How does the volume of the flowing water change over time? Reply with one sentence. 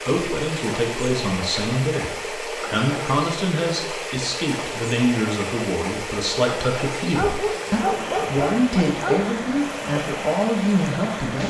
The volume of the flowing water stays about the same.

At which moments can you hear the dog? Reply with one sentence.
The dog can be heard from 7.1 to 9.3 s.